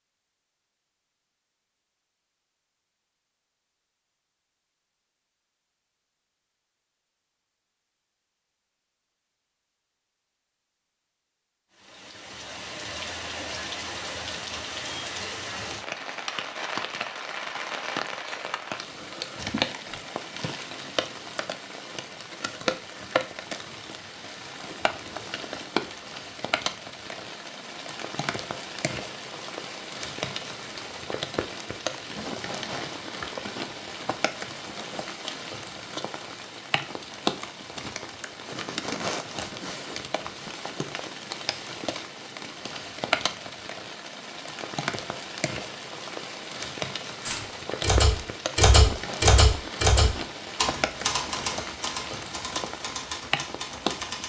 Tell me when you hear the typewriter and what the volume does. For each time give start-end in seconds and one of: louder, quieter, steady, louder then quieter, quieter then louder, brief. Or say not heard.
47.2-54.2 quieter.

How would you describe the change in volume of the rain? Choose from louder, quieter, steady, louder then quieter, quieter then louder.
steady.